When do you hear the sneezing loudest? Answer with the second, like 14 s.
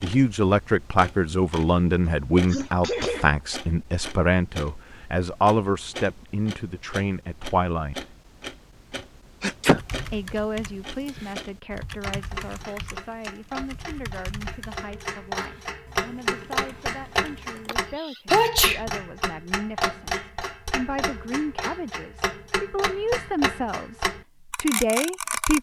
18 s.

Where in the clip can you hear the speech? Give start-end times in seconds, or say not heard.
0.0-8.1, 10.0-25.5.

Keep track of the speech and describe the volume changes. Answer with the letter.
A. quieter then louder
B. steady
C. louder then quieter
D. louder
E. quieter
A.